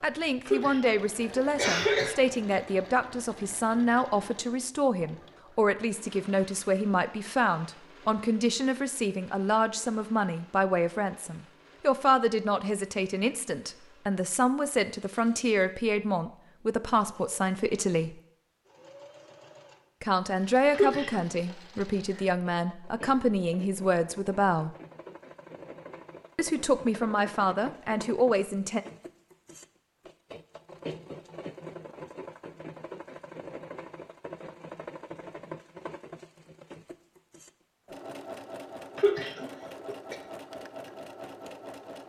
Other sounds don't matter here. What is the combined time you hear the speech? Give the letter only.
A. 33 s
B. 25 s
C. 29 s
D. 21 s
B.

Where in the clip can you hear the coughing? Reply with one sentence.
The coughing can be heard from 0.5 to 2.1 s, from 20.7 to 21.2 s and from 39.0 to 40.1 s.